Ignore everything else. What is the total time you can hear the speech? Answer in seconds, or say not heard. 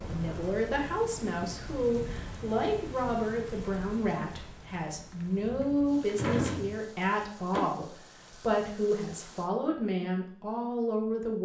11 s.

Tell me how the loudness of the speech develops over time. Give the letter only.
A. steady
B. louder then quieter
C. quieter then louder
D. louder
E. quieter
A.